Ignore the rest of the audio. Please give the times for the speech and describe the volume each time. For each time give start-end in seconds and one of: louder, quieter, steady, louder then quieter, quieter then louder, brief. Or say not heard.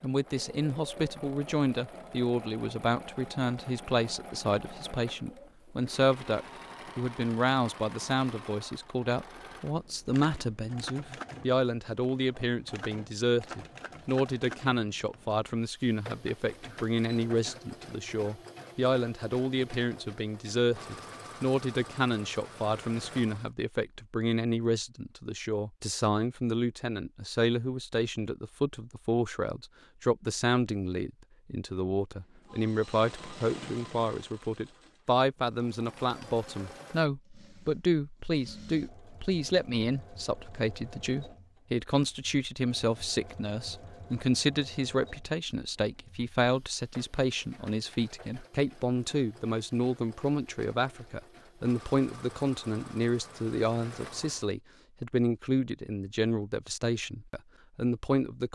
0.0-58.4 steady.